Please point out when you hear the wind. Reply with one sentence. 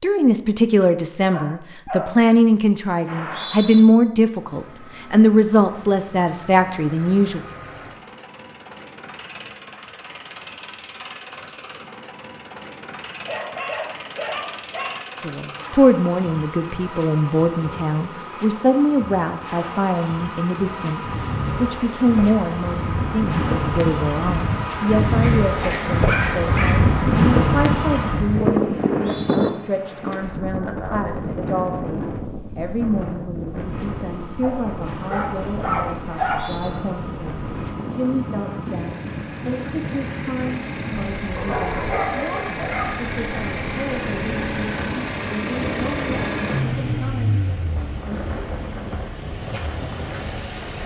You can hear the wind from 20.9 to 50.8 s.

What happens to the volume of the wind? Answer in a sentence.
The volume of the wind goes down.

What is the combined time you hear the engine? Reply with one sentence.
The engine can be heard for 41 seconds in total.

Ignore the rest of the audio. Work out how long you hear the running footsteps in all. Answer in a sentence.
The running footsteps can't be heard in this clip.